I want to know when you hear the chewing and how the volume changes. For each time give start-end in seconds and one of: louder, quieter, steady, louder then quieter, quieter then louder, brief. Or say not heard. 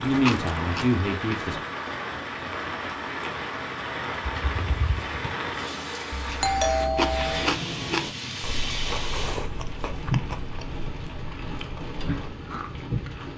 0.0-1.6 brief
6.8-13.2 quieter.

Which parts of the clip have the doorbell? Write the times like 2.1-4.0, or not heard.
6.2-7.5.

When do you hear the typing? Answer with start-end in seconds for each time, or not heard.
4.2-5.3.